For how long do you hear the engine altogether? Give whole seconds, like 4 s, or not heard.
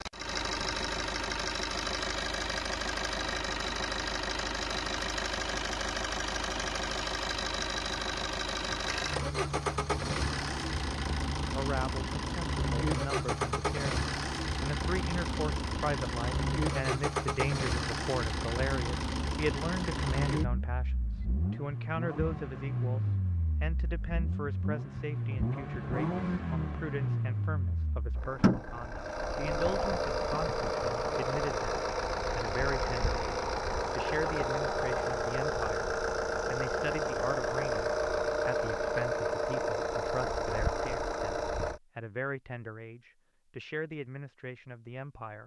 42 s.